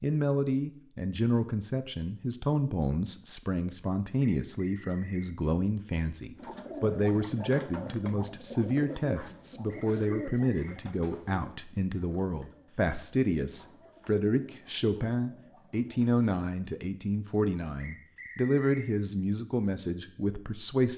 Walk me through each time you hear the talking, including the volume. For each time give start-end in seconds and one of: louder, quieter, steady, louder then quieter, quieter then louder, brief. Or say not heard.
0.0-20.9 steady.